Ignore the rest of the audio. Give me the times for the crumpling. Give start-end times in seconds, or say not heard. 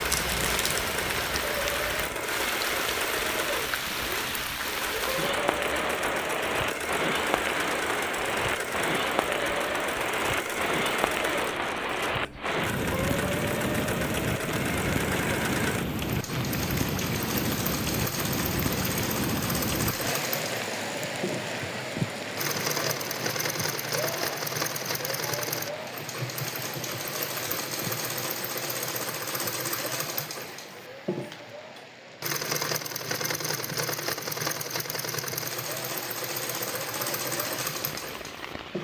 0.1-0.9.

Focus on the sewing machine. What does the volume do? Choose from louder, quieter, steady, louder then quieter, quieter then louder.
steady.